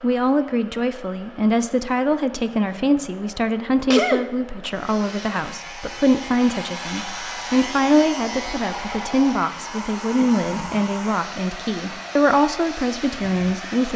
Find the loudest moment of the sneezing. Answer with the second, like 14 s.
4 s.